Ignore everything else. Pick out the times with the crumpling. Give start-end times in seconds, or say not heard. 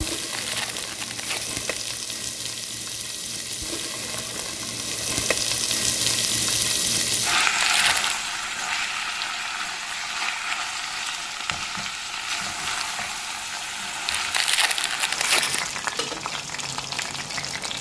0.1-1.9, 7.4-8.2, 14.1-15.7.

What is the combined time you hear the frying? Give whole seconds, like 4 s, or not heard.
18 s.